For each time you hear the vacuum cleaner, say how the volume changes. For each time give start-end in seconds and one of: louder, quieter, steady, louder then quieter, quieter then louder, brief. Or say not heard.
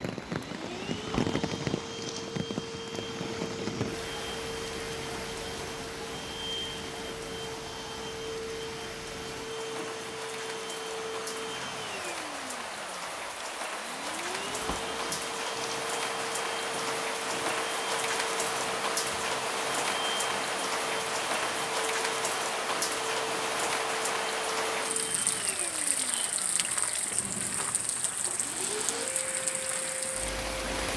0.2-30.9 steady.